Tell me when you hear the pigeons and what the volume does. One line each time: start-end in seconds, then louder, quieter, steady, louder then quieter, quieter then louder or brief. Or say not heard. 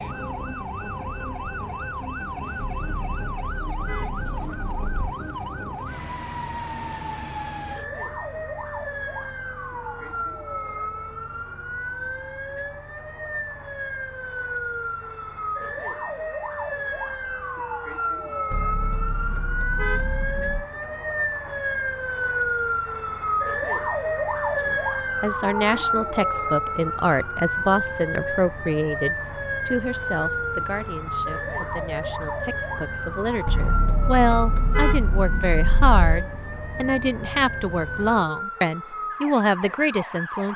not heard.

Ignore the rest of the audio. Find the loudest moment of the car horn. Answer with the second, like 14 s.
35 s.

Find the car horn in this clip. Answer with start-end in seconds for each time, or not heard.
2.5-5.2, 18.5-20.6, 33.5-36.2.